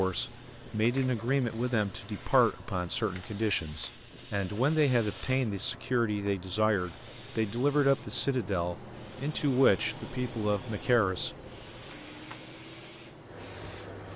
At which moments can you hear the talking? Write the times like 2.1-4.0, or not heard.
0.0-11.3.